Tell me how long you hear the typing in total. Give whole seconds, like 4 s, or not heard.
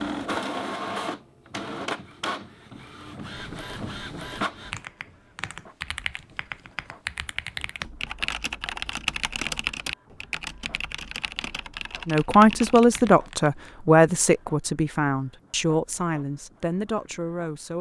9 s.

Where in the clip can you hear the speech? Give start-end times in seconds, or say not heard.
12.1-17.7.